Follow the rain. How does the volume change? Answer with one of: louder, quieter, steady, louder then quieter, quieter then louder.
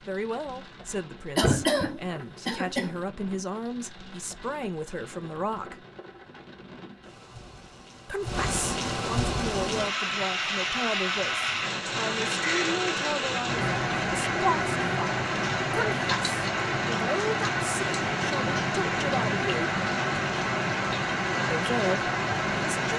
louder.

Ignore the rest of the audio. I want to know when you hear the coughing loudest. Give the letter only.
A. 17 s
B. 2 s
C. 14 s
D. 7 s
B.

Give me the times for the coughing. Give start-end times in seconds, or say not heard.
1.4-2.9.